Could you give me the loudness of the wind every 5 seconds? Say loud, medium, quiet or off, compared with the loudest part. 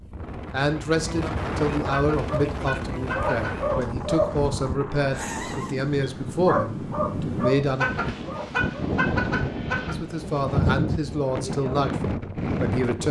medium, loud, loud.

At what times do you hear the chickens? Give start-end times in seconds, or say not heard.
1.9-3.8, 7.8-10.0.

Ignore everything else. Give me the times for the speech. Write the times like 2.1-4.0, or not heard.
0.5-7.9, 9.8-13.0.